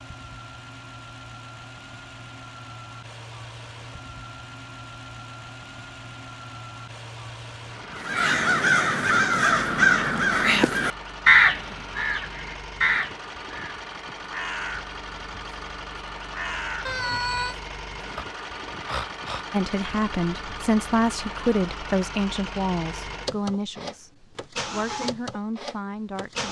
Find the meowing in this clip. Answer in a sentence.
The meowing can be heard from 16.9 to 17.6 s.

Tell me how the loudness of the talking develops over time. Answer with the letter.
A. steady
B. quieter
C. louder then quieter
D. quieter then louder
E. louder
B.